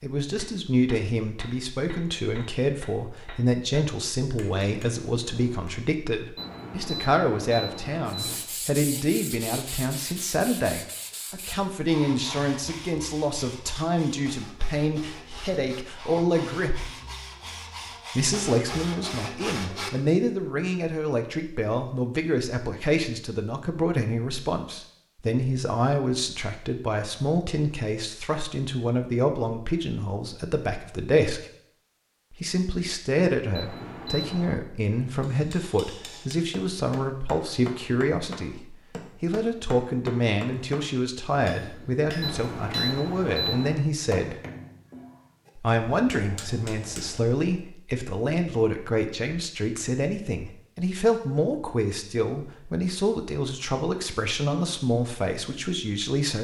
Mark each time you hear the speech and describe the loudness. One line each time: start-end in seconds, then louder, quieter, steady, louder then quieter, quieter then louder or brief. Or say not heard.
0.0-16.9 steady
18.1-31.4 steady
32.3-44.4 steady
45.5-56.3 steady.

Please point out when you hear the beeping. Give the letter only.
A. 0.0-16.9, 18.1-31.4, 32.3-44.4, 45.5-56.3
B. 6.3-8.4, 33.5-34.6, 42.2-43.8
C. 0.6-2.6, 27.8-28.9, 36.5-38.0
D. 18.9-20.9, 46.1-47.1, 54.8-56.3
B.